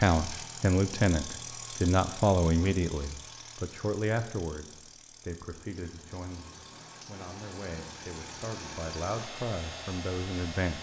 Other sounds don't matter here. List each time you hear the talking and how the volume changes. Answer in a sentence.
You can hear the talking from 0.0 to 10.7 s, getting quieter then louder.